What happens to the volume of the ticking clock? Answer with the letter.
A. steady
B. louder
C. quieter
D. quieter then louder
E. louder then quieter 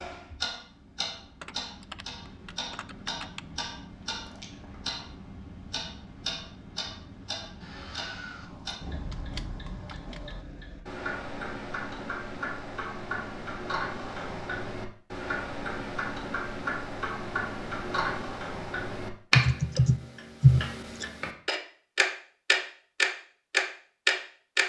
B.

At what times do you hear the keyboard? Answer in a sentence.
You can hear the keyboard from 1.4 to 3.4 s, from 8.4 to 10.4 s and from 19.3 to 21.1 s.